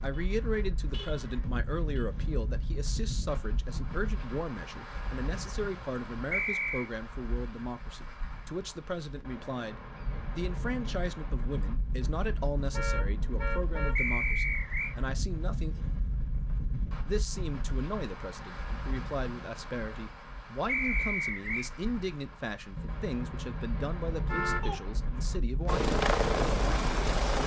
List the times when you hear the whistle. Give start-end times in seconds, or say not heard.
6.3-6.9, 13.9-14.9, 20.6-21.7.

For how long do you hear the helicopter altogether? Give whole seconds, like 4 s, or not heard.
2 s.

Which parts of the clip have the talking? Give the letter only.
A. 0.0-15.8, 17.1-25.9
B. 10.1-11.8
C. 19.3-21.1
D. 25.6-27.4
A.